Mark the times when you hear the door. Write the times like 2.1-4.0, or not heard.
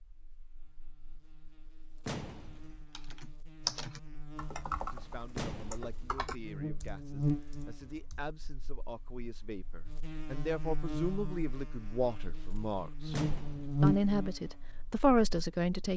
2.0-2.9, 5.3-5.9, 13.1-13.9.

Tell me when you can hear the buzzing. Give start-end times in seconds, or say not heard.
0.1-15.9.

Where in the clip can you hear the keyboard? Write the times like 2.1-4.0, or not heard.
2.9-8.3.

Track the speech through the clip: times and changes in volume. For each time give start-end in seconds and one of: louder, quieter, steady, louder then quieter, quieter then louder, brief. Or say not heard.
4.9-13.2 louder
13.8-15.9 brief.